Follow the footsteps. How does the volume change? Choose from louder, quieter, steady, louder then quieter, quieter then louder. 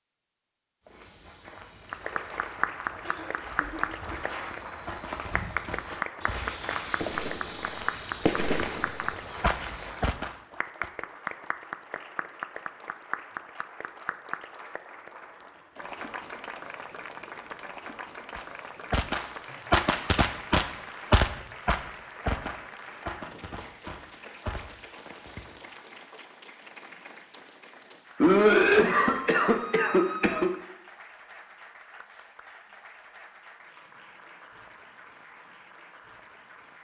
louder.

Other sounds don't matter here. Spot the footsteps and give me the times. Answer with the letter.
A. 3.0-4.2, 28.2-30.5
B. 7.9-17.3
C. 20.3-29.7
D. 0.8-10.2
D.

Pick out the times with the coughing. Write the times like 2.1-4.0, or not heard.
3.0-4.2, 28.2-30.5.